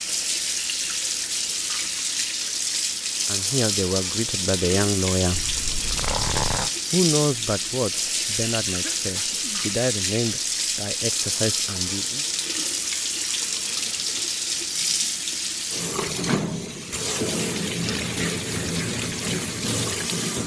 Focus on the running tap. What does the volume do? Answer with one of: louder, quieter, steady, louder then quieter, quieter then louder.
steady.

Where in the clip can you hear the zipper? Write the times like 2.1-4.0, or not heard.
5.3-6.7.